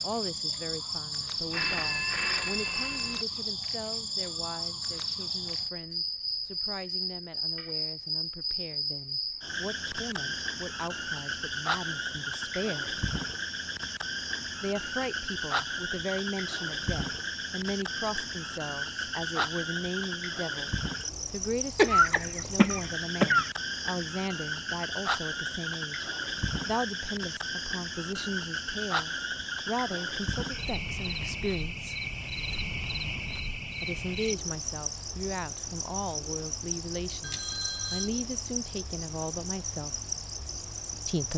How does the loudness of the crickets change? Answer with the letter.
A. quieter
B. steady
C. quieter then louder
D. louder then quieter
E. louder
B.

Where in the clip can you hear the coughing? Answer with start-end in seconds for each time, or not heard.
21.8-23.5.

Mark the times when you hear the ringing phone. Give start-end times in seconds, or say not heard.
1.5-3.2, 37.2-38.1.